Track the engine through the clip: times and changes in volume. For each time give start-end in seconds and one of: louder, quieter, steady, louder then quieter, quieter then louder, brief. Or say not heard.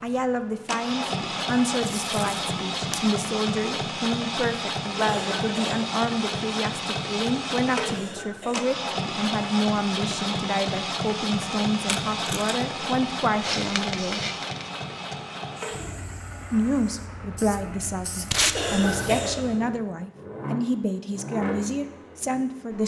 0.0-22.8 quieter.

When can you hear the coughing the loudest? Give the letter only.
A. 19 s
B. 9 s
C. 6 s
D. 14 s
A.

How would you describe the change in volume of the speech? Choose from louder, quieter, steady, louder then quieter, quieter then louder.
steady.